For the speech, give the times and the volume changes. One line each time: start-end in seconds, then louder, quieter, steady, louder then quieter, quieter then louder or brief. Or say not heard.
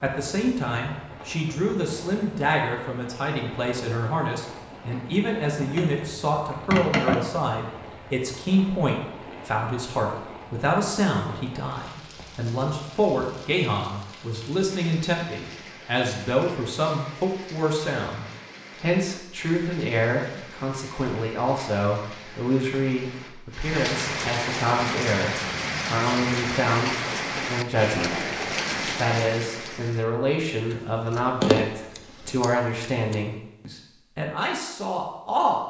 0.0-35.6 steady.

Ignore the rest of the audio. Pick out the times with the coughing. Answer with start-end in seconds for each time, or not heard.
not heard.